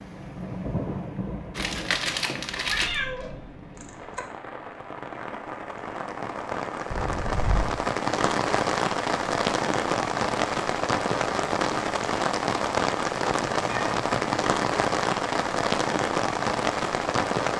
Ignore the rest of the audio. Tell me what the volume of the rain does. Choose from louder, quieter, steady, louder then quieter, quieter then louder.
louder.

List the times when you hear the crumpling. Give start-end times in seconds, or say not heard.
1.6-3.0.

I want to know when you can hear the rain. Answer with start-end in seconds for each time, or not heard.
0.0-17.5.